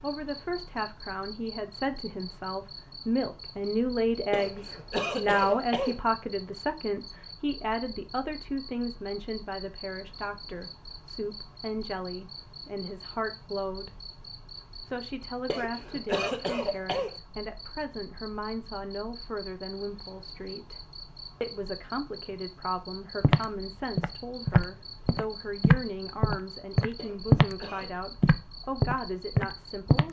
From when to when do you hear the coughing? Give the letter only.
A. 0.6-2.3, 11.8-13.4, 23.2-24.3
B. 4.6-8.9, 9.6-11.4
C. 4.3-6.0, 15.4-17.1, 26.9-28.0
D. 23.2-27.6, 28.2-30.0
C.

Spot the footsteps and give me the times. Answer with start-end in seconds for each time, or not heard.
23.2-27.6, 28.2-30.0.